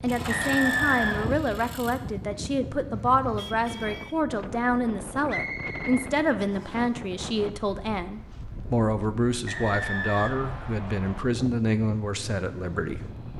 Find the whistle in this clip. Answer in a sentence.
You can hear the whistle from 0.2 to 1.3 s, from 5.2 to 6.8 s and from 9.4 to 11.2 s.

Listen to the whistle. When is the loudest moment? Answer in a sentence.
The loudest moment of the whistle is at 1 second.